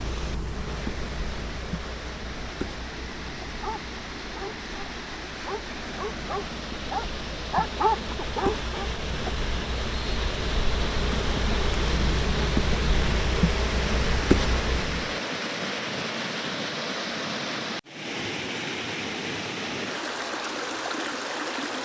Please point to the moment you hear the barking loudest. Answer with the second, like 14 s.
8 s.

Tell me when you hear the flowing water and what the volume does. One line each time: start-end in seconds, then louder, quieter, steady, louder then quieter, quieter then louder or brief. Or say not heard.
0.0-21.7 louder.